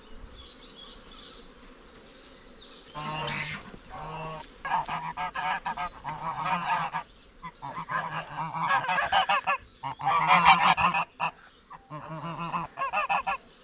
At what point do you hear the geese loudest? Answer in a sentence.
The volume of the geese peaks at 10 seconds.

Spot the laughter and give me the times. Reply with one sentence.
The laughter can't be heard in this clip.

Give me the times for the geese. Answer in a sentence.
The geese can be heard from 3.0 to 13.4 s.